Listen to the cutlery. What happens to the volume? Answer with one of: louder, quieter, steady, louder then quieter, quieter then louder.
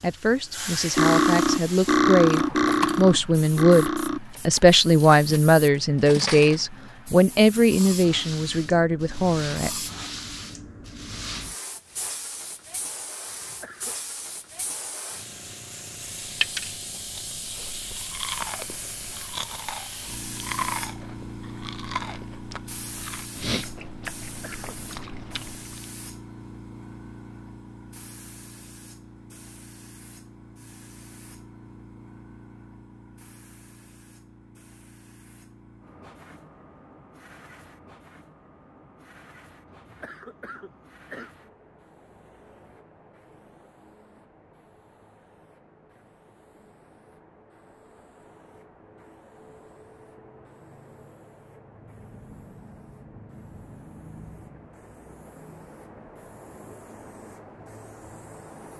quieter then louder.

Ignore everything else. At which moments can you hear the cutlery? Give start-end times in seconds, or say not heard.
0.9-6.7.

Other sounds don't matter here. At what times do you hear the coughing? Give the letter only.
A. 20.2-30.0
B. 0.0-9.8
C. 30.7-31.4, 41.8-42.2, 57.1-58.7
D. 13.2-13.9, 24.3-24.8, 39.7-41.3
D.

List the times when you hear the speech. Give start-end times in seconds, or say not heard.
0.0-9.8.